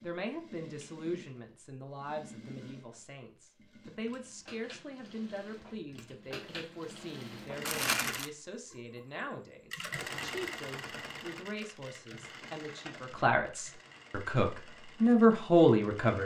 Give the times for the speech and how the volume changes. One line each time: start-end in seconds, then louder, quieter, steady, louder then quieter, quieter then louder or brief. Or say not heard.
0.0-16.2 louder.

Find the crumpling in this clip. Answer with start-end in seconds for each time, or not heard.
7.7-8.3.